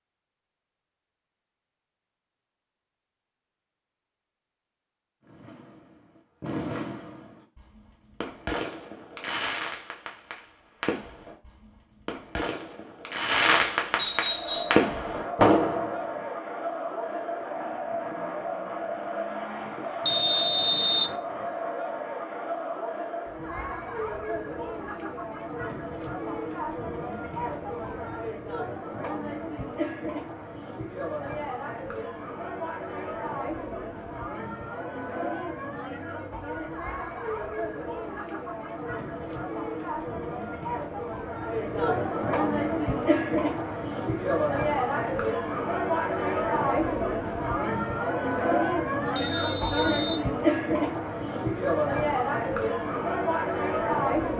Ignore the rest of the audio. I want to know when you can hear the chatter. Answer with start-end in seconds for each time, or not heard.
14.1-54.3.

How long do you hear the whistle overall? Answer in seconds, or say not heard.
3 s.